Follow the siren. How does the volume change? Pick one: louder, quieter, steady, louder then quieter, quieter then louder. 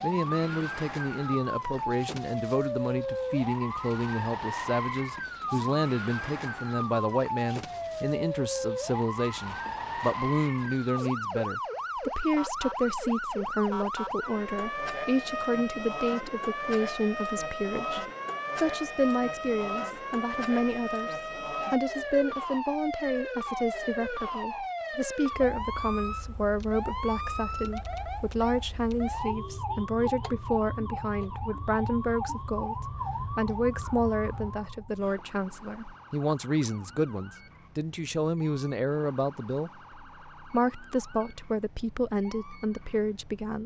quieter.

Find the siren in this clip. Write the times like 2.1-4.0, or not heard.
0.0-43.6.